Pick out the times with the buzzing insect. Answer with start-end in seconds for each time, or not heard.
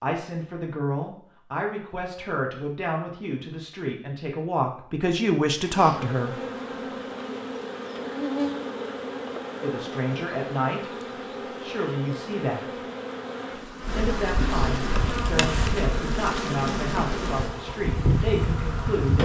5.5-19.2.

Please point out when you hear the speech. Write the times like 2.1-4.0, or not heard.
0.0-6.5, 9.6-12.8, 13.9-19.2.